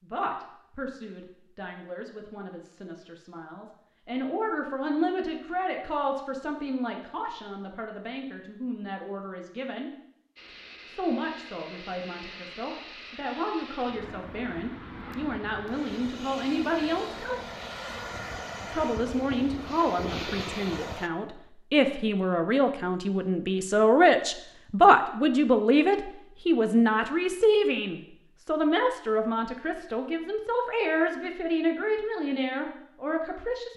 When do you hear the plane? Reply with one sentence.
You can hear the plane from 10.3 to 21.1 s.